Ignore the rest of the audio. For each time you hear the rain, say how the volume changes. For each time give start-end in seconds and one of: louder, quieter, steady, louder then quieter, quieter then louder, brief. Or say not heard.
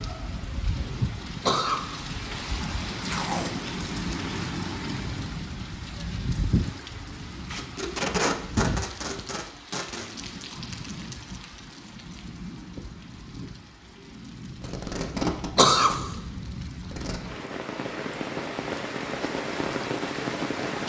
0.0-20.8 quieter then louder.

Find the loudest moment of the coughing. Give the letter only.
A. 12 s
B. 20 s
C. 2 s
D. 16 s
D.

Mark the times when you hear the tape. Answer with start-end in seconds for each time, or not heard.
3.0-3.7, 7.5-10.1, 14.6-17.2.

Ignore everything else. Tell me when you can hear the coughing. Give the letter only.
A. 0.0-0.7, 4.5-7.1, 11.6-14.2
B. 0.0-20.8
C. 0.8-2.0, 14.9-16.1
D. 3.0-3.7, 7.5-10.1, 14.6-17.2
C.